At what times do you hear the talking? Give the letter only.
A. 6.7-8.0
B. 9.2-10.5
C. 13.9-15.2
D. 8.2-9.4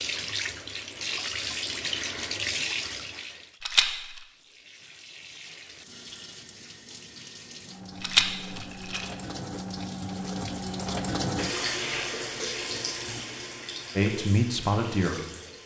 C.